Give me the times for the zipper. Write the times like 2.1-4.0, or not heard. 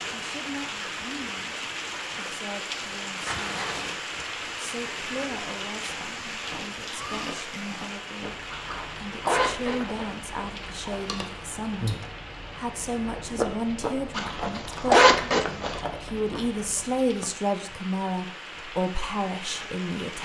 3.2-4.0, 8.5-10.2, 14.2-15.8.